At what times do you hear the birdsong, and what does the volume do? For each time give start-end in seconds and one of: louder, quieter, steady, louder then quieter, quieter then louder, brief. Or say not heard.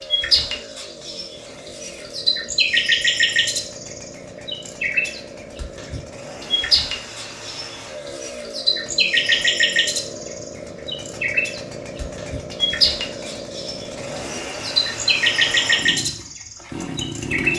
0.0-17.5 steady.